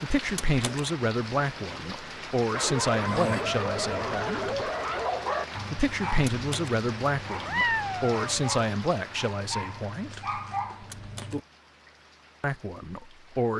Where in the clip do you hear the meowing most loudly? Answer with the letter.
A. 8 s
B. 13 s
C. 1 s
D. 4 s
A.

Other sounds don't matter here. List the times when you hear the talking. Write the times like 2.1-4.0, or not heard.
0.0-4.5, 5.7-10.4, 12.4-13.5.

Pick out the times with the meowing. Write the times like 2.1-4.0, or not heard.
3.0-4.7, 7.5-8.6.